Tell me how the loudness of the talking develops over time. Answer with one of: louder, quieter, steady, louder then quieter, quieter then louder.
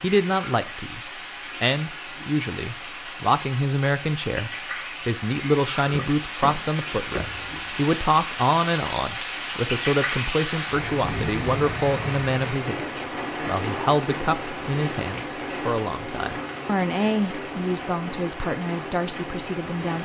steady.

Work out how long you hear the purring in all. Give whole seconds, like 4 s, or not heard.
not heard.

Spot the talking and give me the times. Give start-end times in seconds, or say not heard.
0.0-20.0.